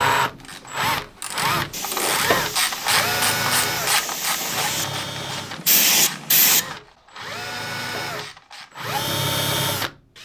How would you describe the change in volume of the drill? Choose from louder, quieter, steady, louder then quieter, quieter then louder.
quieter then louder.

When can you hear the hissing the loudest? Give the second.
6 s.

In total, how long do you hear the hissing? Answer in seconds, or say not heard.
5 s.